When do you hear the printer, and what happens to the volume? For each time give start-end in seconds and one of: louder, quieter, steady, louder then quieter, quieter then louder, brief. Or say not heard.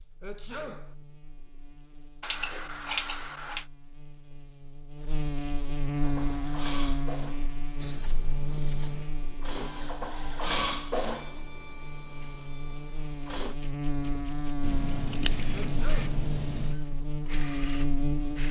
6.0-18.4 louder then quieter.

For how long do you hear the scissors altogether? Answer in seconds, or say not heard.
5 s.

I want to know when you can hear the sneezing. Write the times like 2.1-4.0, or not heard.
0.2-0.9, 15.5-16.2.